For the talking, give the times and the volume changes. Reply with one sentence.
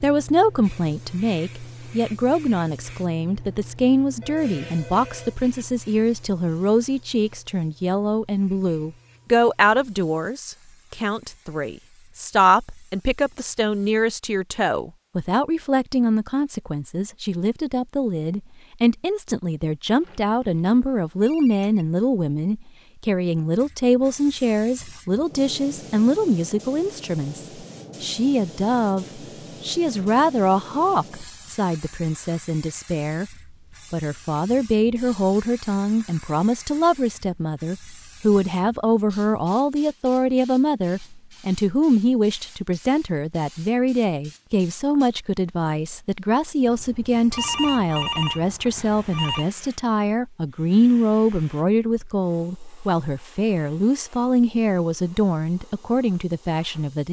You can hear the talking from 0.0 to 57.0 s, at a steady volume.